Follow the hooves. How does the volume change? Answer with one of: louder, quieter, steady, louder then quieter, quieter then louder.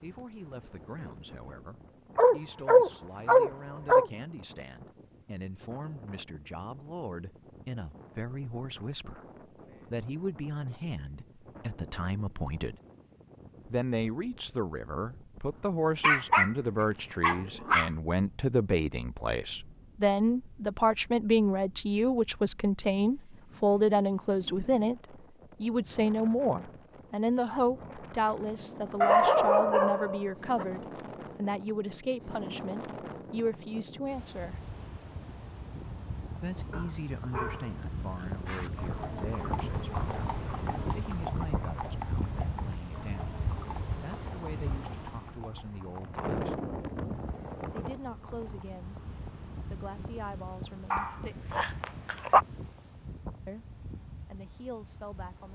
quieter.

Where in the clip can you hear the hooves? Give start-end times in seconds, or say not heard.
38.5-48.6.